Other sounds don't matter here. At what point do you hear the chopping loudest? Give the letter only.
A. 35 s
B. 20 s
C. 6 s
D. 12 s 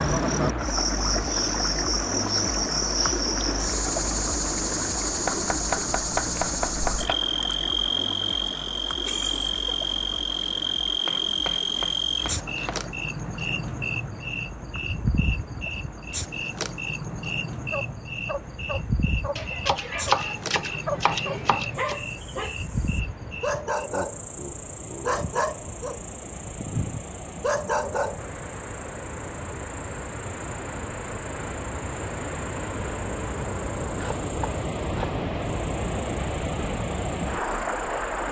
B.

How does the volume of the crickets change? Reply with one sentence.
The volume of the crickets goes down.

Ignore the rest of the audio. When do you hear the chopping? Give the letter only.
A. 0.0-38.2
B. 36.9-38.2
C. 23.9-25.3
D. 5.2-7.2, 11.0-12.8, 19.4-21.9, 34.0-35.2
D.